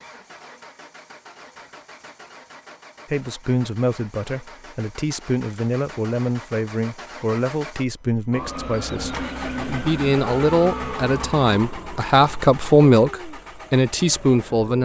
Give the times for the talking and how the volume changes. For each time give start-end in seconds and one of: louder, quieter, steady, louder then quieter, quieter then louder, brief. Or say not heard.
3.1-14.8 louder.